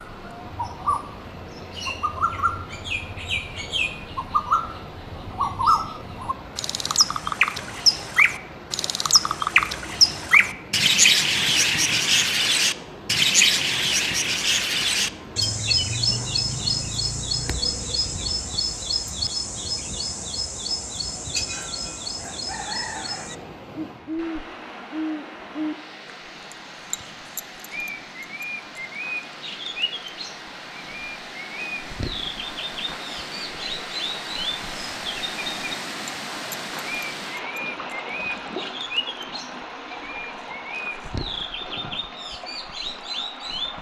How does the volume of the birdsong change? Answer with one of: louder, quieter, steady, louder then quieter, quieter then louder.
louder then quieter.